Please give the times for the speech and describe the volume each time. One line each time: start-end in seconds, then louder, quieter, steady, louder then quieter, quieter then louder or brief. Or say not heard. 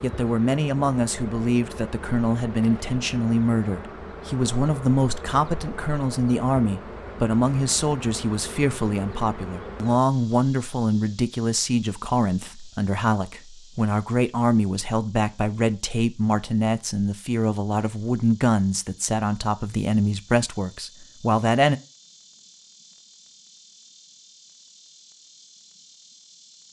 0.0-21.8 steady.